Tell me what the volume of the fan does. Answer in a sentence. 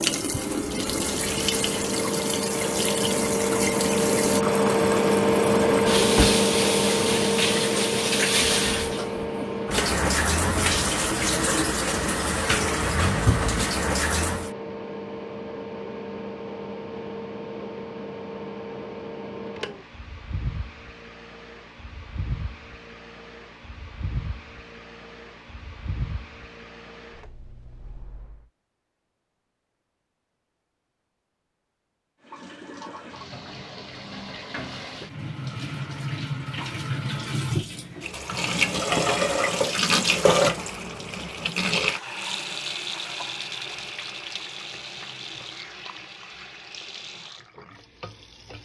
The loudness of the fan goes down.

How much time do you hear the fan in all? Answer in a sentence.
You can hear the fan for 28 seconds altogether.